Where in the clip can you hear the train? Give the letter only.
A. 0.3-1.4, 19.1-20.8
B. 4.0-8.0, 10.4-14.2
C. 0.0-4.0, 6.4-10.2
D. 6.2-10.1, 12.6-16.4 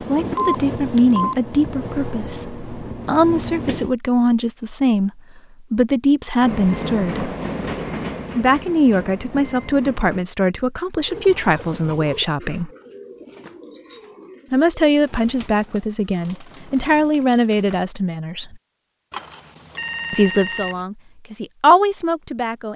C.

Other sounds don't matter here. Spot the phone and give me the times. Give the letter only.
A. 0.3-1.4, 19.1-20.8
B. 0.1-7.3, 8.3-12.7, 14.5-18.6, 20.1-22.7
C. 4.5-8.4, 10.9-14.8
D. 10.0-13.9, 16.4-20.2
A.